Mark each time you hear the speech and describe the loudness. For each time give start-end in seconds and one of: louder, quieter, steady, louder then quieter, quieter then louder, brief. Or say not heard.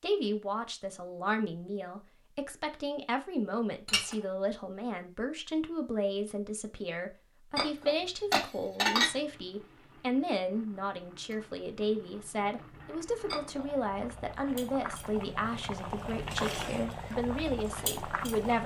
0.0-18.6 steady.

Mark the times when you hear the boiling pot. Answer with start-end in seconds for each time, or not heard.
9.0-18.6.